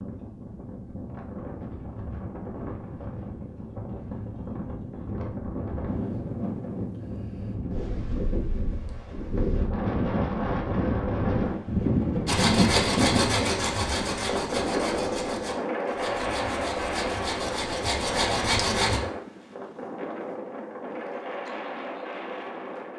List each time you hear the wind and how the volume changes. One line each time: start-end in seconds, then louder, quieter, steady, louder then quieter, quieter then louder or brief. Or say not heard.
0.0-22.9 louder then quieter.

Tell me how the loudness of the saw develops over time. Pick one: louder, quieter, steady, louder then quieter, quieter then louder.
quieter then louder.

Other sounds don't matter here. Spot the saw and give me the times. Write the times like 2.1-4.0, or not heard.
12.2-19.0.